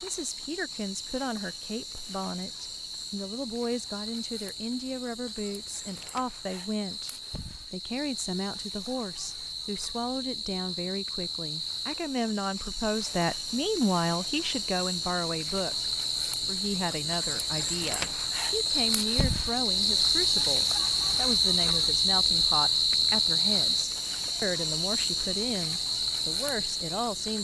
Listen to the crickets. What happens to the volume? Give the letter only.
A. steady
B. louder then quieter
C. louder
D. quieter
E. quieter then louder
C.